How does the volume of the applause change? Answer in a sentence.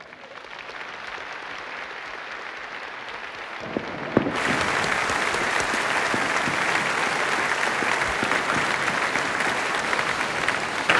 The loudness of the applause goes up.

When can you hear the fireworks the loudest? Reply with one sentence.
The loudest moment of the fireworks is at 4 seconds.